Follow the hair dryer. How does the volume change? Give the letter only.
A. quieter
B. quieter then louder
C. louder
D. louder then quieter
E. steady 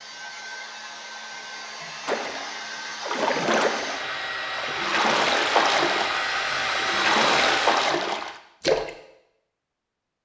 C.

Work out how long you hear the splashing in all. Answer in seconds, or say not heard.
7 s.